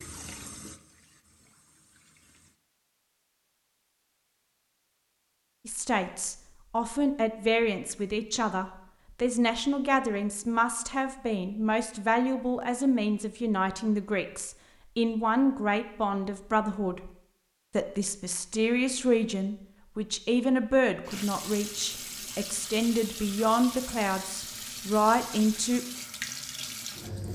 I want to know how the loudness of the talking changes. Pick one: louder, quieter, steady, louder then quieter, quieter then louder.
steady.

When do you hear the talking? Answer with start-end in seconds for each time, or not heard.
5.7-17.1, 17.8-25.8.